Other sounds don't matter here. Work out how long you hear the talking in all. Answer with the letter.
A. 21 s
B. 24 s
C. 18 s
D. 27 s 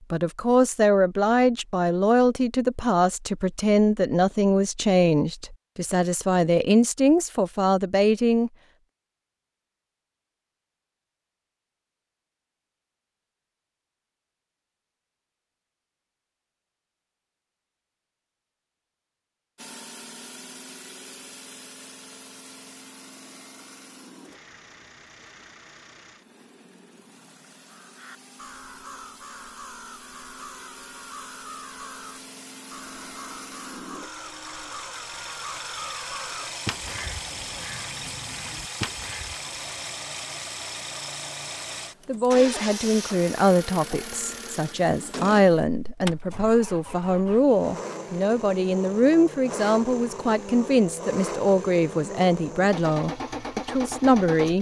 A.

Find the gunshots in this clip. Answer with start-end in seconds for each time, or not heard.
not heard.